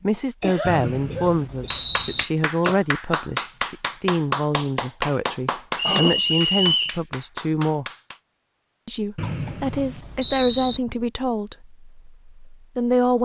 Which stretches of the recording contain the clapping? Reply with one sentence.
The clapping can be heard from 1.7 to 8.2 s.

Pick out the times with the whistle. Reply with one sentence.
You can hear the whistle from 0.6 to 2.2 s, from 5.8 to 7.0 s and from 9.2 to 10.8 s.